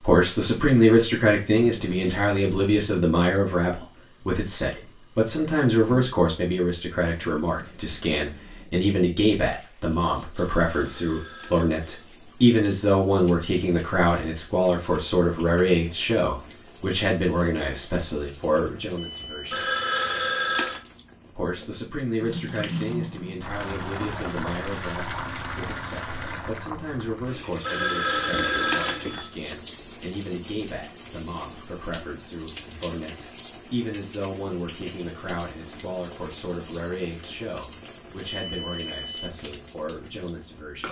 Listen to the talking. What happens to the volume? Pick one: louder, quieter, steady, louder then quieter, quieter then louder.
quieter.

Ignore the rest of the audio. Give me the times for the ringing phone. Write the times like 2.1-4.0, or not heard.
10.3-11.9, 19.5-20.8, 27.6-29.2.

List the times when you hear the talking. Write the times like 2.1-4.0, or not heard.
0.0-19.6, 21.3-40.8.